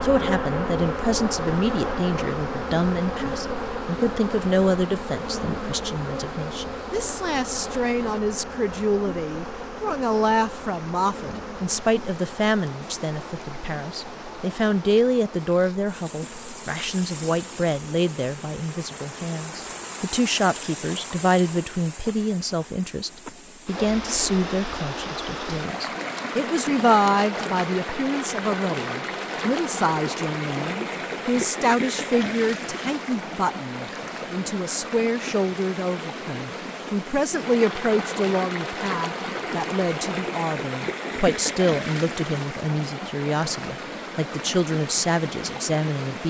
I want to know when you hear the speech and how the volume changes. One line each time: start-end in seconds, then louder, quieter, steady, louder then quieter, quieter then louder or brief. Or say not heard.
0.0-46.2 steady.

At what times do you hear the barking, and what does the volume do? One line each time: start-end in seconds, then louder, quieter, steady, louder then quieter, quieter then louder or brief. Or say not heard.
not heard.